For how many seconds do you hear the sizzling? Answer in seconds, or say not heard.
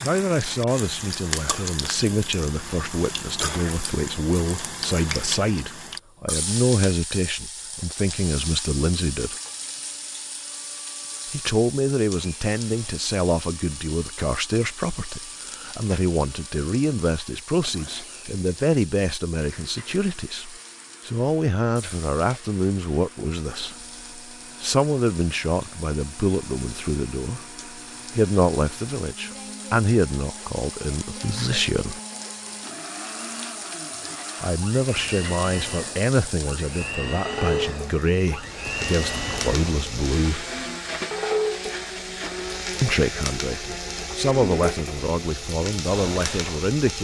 47 s.